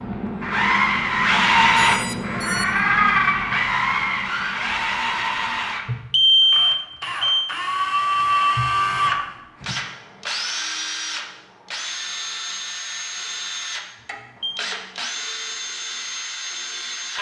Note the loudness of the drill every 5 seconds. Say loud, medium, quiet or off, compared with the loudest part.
loud, loud, medium, medium.